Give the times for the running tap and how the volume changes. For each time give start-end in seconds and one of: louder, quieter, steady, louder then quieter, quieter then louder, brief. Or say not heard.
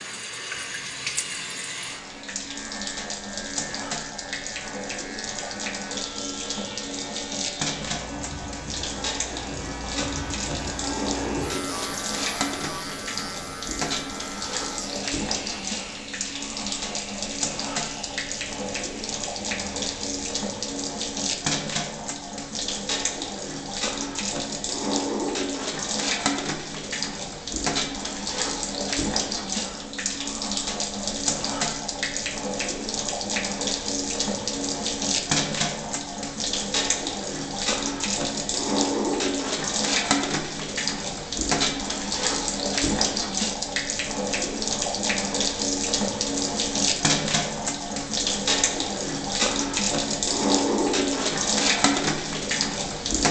0.0-53.2 louder.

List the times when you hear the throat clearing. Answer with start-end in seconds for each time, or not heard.
not heard.